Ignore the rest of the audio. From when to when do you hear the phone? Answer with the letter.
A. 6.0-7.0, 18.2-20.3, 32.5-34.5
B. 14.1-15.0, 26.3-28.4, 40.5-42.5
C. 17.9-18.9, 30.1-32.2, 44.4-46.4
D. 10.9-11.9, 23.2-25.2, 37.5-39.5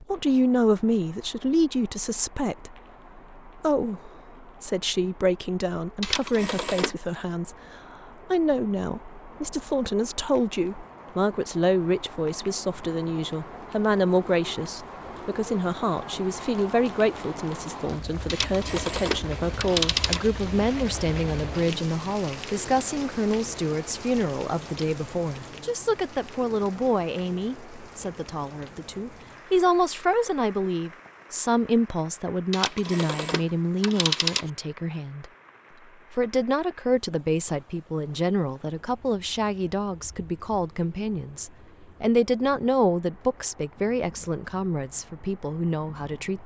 A.